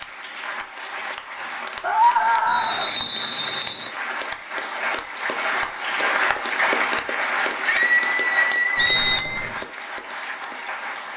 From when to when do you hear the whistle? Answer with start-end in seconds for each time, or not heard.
2.5-3.9, 8.8-9.7.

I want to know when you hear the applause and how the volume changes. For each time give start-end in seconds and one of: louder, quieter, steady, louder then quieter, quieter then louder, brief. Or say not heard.
0.0-11.1 louder then quieter.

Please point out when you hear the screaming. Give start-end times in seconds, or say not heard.
1.8-2.9, 7.7-9.5.